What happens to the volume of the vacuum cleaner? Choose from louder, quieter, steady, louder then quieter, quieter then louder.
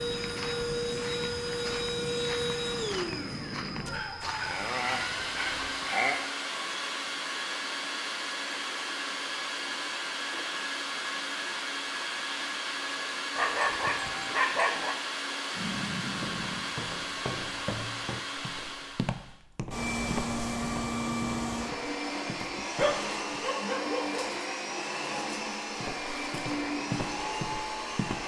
steady.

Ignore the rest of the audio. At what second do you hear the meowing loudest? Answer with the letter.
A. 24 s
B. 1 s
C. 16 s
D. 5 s
C.